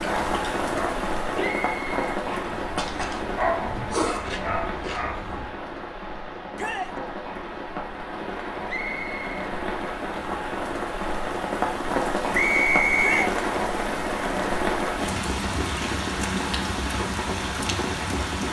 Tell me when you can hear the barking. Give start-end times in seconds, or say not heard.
0.0-5.5.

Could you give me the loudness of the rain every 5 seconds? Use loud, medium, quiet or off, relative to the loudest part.
loud, medium, loud, loud.